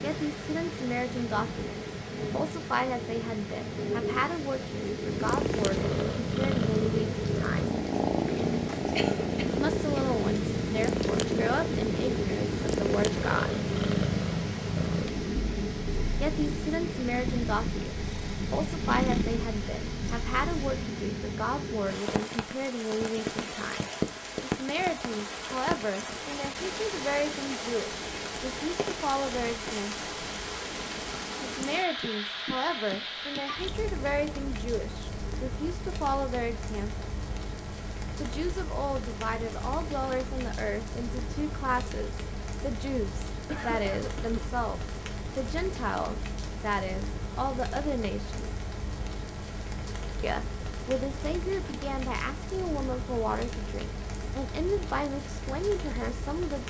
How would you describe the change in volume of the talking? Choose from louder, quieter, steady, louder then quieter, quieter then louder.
steady.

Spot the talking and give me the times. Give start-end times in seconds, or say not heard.
0.0-7.7, 9.6-13.6, 16.2-30.1, 31.4-37.1, 38.2-48.5, 50.2-56.6.